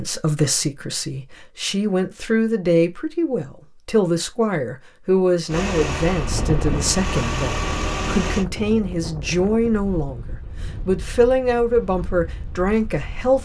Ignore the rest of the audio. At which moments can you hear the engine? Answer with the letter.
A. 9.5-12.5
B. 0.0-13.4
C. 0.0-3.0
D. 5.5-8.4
D.